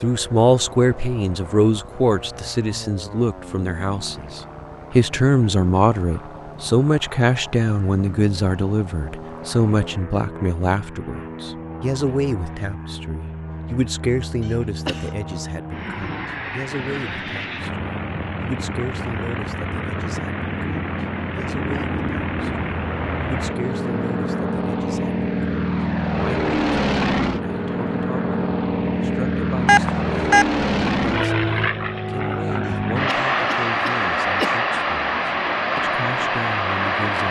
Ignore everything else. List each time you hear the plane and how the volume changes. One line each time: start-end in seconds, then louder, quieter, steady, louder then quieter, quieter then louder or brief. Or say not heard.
0.0-37.2 louder.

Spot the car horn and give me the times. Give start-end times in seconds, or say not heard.
not heard.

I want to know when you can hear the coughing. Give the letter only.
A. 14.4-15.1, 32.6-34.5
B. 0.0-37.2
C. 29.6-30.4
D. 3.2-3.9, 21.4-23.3
A.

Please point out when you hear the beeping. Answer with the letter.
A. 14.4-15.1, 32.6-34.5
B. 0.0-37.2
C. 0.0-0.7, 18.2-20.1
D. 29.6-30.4
D.